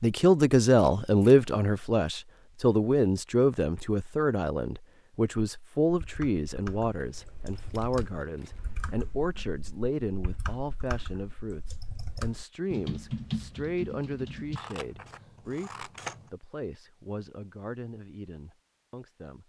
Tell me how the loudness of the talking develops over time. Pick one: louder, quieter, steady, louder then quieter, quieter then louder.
quieter.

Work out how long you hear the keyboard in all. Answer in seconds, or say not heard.
9 s.